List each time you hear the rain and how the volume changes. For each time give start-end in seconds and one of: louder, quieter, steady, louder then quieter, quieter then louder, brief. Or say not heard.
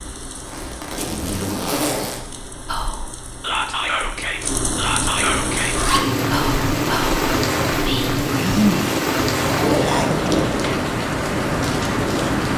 0.0-12.5 louder.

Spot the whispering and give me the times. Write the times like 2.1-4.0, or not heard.
2.6-10.2.